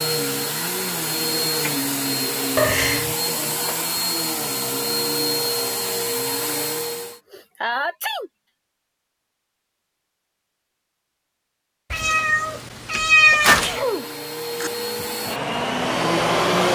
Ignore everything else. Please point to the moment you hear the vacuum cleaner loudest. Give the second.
16 s.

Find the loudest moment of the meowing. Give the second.
13 s.